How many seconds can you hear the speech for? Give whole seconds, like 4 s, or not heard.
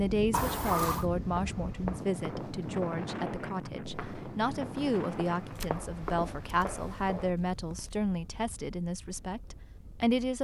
10 s.